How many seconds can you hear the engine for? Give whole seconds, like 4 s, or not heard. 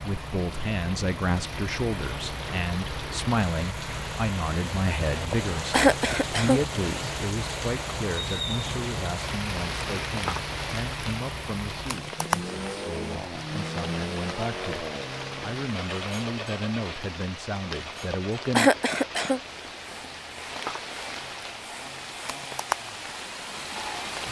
24 s.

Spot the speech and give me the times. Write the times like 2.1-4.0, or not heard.
0.0-18.7.